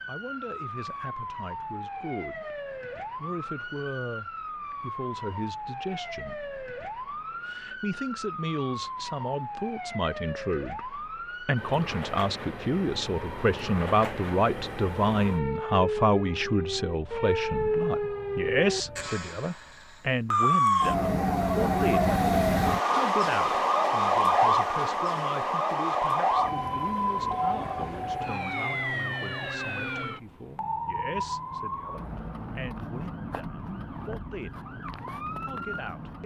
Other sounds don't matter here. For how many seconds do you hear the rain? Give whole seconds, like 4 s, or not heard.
not heard.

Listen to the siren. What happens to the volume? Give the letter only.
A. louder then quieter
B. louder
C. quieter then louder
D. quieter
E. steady
A.